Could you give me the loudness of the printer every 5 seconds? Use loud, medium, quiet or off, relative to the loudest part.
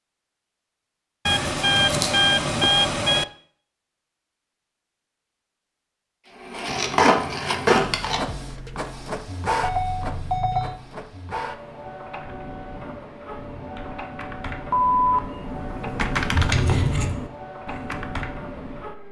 off, loud, medium, medium.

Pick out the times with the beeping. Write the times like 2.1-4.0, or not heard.
1.2-3.2, 9.6-10.8, 14.7-15.2.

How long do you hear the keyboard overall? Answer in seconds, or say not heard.
7 s.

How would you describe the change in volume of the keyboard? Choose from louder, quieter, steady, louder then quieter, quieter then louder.
louder then quieter.